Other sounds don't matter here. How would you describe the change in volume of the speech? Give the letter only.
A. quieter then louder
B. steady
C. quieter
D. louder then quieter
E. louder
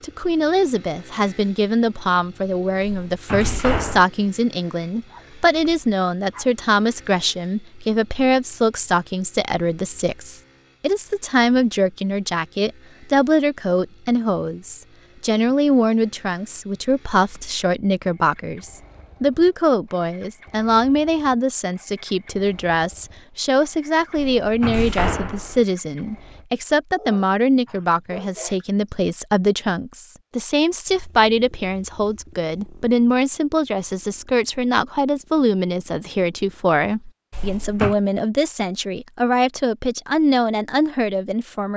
B.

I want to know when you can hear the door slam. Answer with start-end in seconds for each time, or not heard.
2.8-4.0, 24.1-25.6, 37.3-38.0.